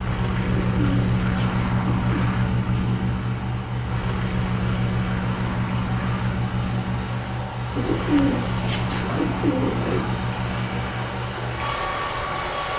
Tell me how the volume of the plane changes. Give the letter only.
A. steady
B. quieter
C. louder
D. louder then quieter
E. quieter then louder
B.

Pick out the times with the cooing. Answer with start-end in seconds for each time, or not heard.
0.4-2.3, 7.8-10.2.